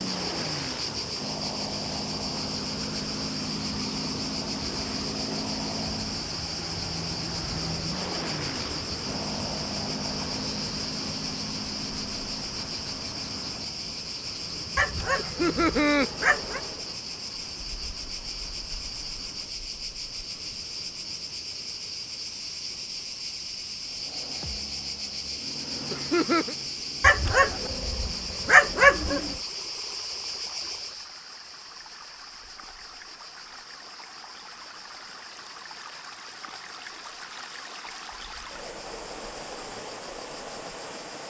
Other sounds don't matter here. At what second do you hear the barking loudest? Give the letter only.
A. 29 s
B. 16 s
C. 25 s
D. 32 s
A.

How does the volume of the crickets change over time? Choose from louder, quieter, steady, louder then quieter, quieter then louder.
quieter.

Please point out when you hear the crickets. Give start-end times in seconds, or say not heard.
0.0-41.2.